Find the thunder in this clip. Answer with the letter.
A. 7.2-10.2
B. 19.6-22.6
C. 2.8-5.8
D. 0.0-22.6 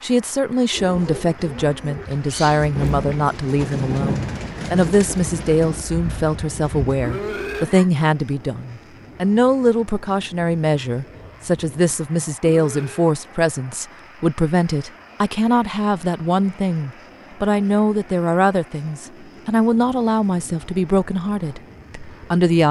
C.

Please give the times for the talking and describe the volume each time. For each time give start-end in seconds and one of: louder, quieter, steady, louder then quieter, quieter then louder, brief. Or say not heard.
0.0-22.6 steady.